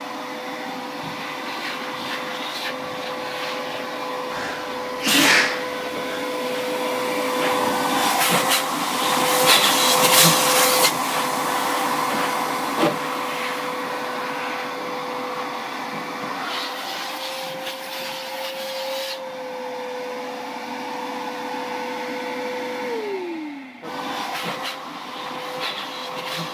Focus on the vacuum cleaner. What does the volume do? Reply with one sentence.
The loudness of the vacuum cleaner goes up, then down.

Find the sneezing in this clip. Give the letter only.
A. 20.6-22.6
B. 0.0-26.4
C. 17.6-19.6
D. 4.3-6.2
D.